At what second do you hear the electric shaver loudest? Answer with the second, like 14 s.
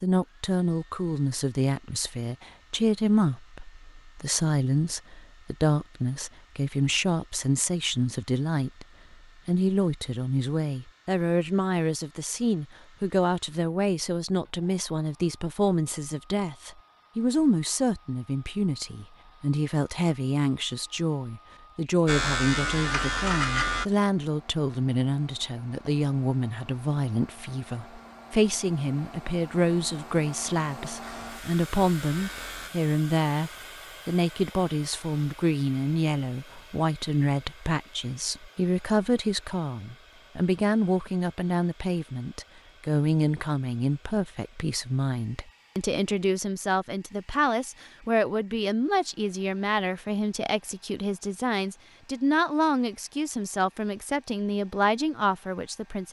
23 s.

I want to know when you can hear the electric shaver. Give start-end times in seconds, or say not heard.
22.1-23.9, 31.0-32.7.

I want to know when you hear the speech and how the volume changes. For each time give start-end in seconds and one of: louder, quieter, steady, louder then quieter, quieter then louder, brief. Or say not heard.
0.0-8.8 steady
9.4-56.0 steady.